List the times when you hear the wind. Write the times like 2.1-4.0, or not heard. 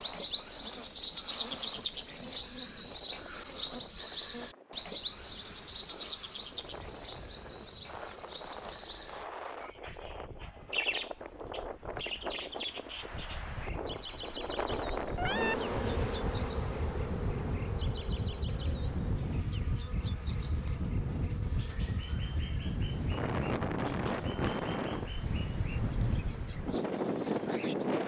0.0-28.0.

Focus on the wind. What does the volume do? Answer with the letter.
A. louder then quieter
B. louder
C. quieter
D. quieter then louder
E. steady
B.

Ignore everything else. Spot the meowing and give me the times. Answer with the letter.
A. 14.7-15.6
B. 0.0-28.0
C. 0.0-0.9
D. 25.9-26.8
A.